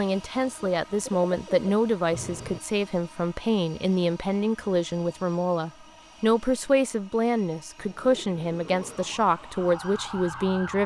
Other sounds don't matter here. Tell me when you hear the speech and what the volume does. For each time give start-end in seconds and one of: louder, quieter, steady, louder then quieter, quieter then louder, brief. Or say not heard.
0.0-10.8 steady.